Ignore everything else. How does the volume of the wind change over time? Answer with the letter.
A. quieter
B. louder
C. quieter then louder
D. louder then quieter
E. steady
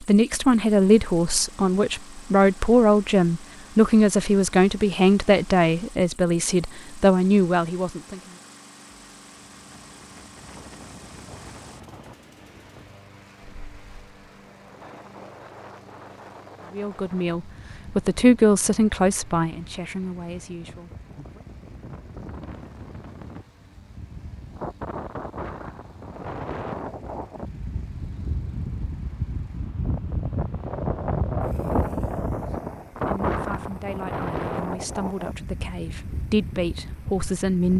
B.